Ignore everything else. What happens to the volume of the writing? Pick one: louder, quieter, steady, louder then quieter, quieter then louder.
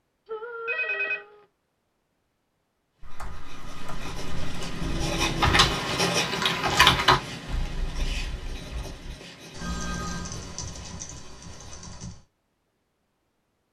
louder then quieter.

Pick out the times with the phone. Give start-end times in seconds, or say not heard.
0.2-1.4, 4.8-5.8, 9.6-10.3.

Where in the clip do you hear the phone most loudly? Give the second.
1 s.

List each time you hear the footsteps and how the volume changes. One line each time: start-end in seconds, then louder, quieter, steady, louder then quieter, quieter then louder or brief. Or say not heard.
not heard.